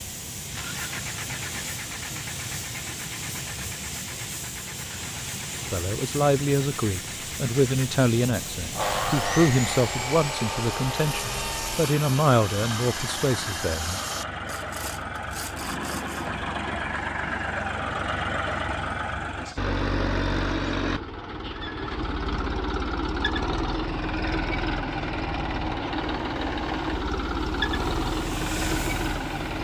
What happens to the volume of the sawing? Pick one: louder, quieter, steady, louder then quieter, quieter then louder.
quieter.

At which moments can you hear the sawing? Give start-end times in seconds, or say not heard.
8.8-16.4.